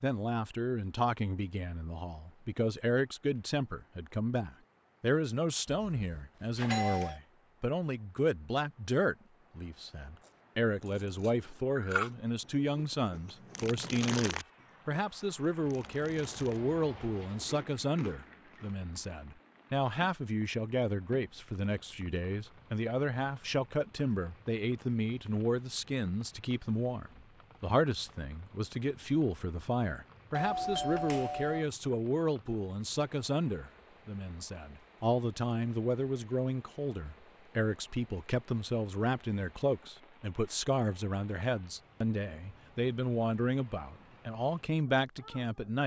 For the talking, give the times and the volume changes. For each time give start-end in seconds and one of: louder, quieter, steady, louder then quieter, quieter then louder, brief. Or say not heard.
0.0-45.8 steady.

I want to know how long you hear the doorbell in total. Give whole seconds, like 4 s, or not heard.
3 s.